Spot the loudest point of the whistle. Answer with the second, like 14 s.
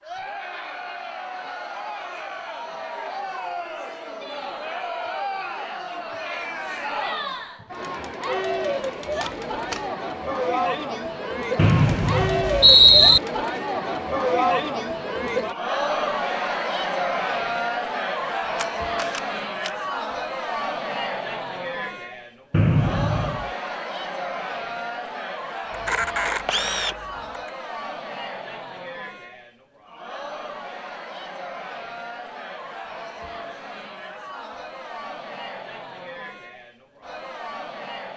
13 s.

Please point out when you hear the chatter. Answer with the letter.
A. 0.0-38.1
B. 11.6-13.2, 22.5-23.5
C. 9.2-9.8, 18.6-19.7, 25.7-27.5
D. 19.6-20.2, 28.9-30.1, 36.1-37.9
A.